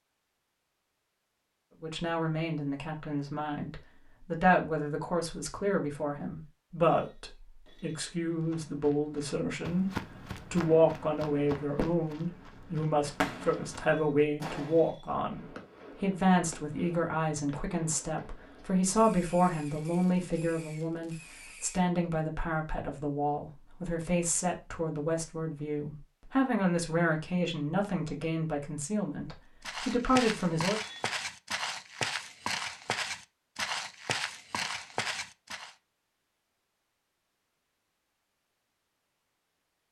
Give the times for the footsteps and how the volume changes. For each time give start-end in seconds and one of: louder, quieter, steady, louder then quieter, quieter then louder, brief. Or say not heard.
8.2-14.0 louder then quieter
29.6-35.8 steady.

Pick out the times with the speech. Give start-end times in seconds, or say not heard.
1.8-9.9, 10.5-30.8.